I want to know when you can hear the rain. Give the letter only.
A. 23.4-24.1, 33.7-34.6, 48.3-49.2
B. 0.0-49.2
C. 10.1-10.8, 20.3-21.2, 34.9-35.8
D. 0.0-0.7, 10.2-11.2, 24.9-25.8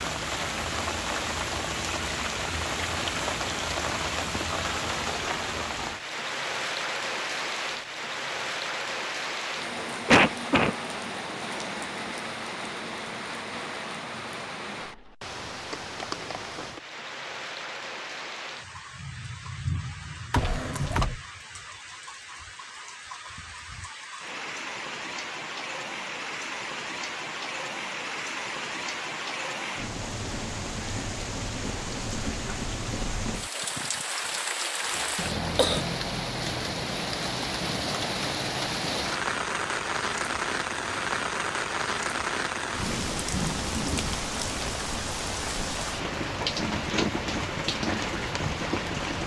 B.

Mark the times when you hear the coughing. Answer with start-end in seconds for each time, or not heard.
10.1-10.8, 20.3-21.2, 34.9-35.8.